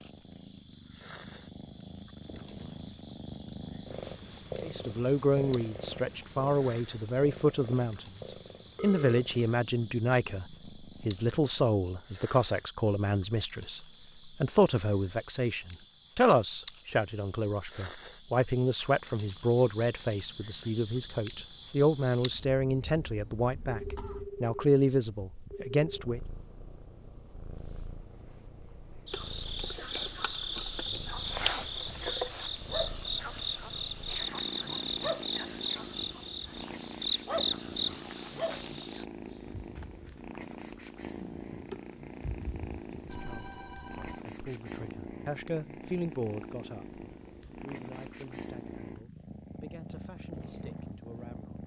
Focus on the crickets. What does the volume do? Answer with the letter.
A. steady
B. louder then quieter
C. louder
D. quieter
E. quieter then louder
C.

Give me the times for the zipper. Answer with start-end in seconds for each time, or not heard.
not heard.